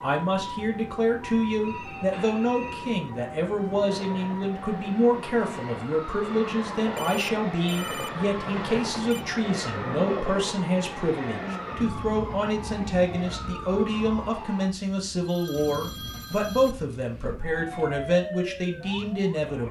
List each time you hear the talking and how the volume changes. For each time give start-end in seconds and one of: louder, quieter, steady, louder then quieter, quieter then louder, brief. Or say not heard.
0.0-19.6 steady.